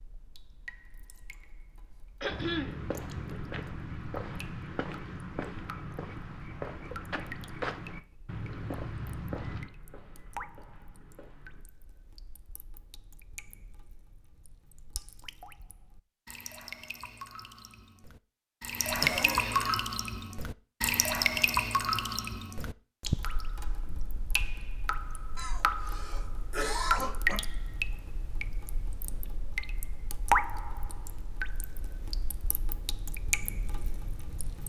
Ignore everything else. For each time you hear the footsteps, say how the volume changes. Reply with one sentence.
The footsteps can be heard from 2.2 to 11.7 s, getting quieter.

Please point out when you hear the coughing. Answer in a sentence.
You can hear the coughing from 2.2 to 2.8 s, from 19.0 to 19.9 s and from 25.4 to 27.4 s.